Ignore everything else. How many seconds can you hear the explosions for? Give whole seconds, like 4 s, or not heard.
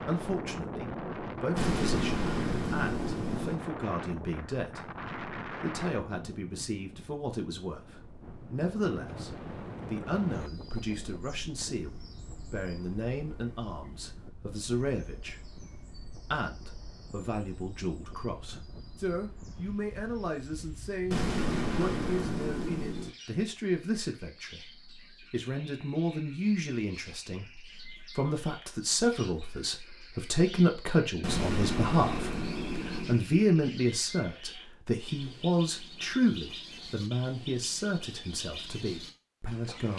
6 s.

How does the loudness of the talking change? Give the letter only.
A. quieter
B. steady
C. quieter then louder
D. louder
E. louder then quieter
D.